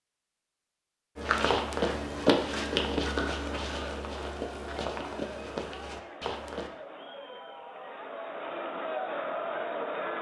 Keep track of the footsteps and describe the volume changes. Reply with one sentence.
The loudness of the footsteps goes down.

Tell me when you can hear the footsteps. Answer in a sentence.
The footsteps can be heard from 1.1 to 6.7 s.